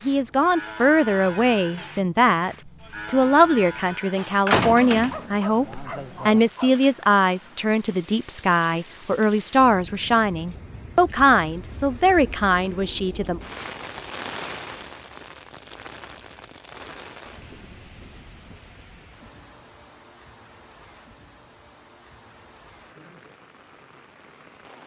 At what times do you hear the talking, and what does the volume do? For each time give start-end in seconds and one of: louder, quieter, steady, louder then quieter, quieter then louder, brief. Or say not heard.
0.1-13.4 steady.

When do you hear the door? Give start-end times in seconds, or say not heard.
4.2-5.2.